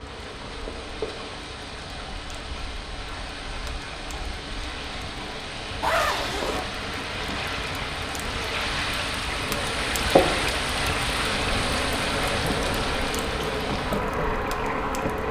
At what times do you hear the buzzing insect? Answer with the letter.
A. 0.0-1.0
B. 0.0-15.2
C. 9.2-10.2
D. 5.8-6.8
B.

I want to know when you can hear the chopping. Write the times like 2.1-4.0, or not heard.
not heard.